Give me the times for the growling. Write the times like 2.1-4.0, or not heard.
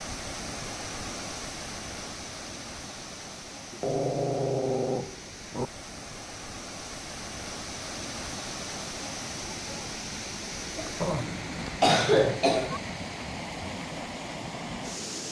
3.7-5.7, 11.0-12.4.